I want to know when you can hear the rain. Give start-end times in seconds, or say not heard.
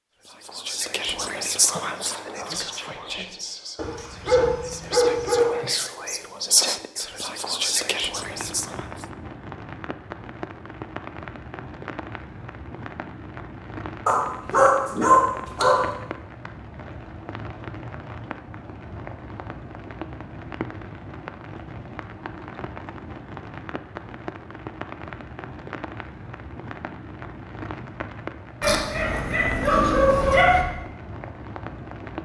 8.2-32.1.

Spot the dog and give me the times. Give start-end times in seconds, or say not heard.
3.8-5.5, 14.1-15.8, 28.6-30.6.